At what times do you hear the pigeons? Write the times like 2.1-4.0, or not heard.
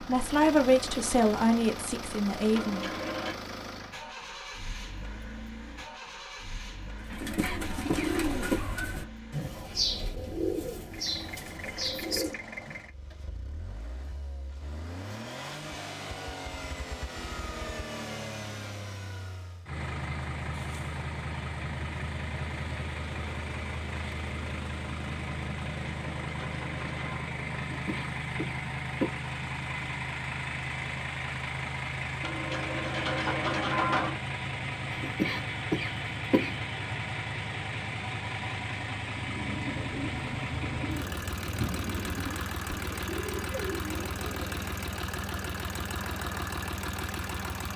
7.0-12.8, 39.1-44.7.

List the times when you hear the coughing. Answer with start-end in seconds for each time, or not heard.
7.1-8.7, 27.6-29.1, 34.9-36.5.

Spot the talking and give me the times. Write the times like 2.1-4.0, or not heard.
0.1-2.9.